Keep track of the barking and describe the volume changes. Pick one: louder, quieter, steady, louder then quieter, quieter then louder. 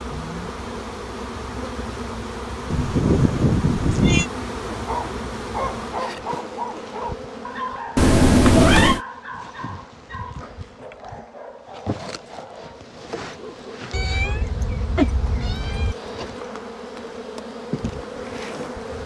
quieter.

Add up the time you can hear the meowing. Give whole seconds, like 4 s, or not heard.
5 s.